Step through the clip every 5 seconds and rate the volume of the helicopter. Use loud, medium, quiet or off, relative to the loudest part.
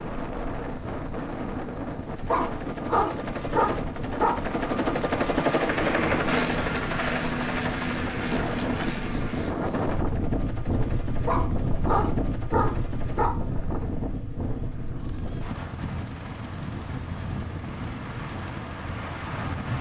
medium, loud, quiet, quiet.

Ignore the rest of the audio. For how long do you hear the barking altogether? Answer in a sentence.
You can hear the barking for 4 seconds altogether.